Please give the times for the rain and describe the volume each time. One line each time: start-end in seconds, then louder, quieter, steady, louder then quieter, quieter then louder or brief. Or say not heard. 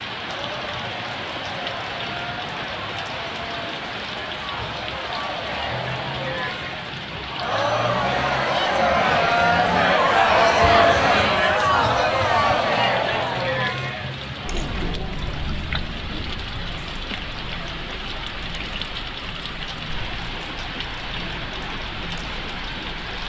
0.0-23.2 steady.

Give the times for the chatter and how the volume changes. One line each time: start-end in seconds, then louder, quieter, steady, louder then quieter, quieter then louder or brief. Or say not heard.
0.1-23.2 louder then quieter.